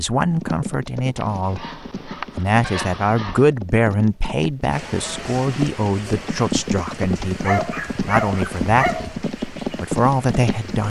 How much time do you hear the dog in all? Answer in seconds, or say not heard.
4 s.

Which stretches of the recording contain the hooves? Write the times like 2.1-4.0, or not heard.
0.2-10.8.